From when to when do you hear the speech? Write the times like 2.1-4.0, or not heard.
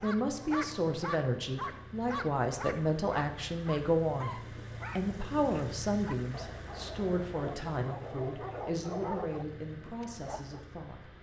0.0-4.3, 5.0-11.1.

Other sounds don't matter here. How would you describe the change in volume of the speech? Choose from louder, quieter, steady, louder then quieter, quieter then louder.
quieter.